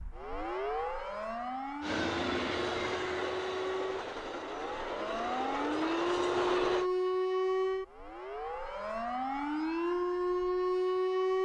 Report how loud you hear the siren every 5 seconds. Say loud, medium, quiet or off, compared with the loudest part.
medium, loud, loud.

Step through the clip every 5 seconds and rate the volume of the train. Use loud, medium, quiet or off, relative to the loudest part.
loud, loud, off.